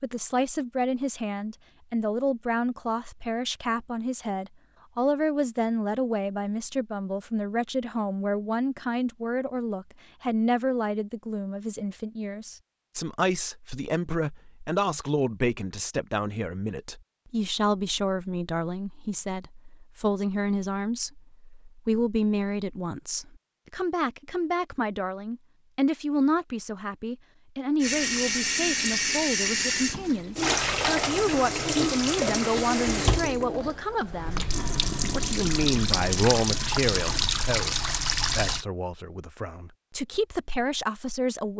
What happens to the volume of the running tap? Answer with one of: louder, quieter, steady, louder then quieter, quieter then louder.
steady.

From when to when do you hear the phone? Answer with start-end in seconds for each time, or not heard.
not heard.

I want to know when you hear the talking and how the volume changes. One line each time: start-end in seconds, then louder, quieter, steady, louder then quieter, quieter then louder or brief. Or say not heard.
0.0-34.5 steady
35.1-41.5 quieter then louder.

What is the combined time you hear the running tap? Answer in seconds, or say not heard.
11 s.